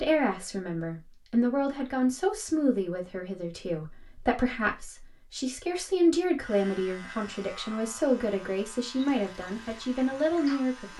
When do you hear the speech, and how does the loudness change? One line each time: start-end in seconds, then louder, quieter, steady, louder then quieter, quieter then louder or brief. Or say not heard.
0.0-10.9 steady.